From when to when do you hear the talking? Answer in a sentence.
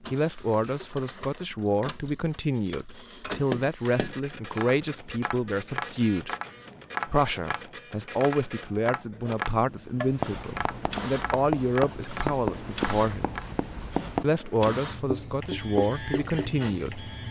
The talking can be heard from 0.0 to 6.3 s, from 7.0 to 13.3 s and from 14.2 to 17.1 s.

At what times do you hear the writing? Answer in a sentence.
You can hear the writing from 9.9 to 17.2 s.